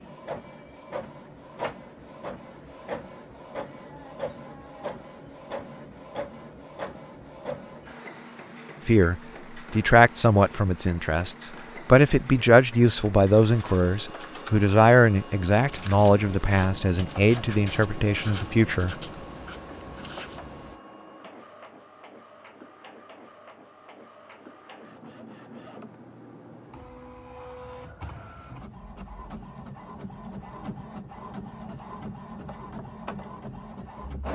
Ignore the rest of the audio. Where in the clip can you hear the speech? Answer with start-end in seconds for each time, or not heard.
8.8-18.9.